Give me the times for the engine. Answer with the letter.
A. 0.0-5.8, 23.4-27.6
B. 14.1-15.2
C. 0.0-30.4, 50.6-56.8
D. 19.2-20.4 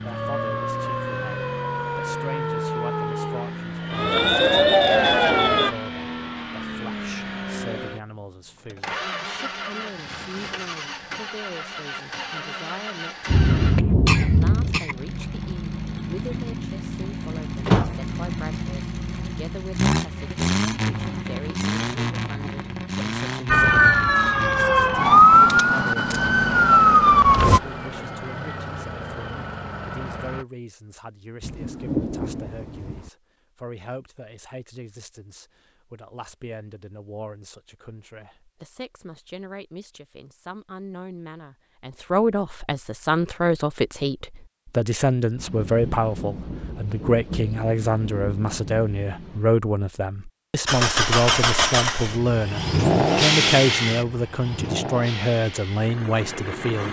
C.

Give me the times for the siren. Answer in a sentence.
You can hear the siren from 0.0 to 5.8 s and from 23.4 to 27.6 s.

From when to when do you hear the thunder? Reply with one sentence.
The thunder can be heard from 13.2 to 14.8 s, from 31.4 to 33.1 s and from 45.4 to 49.5 s.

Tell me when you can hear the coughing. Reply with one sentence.
You can hear the coughing from 14.1 to 15.2 s.